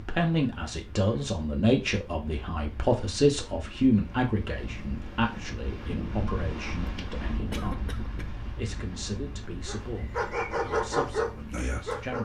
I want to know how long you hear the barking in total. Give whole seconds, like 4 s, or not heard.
3 s.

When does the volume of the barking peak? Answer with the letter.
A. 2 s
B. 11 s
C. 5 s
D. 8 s
B.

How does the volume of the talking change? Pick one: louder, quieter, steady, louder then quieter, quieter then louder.
quieter.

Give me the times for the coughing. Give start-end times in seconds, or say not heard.
7.5-8.3.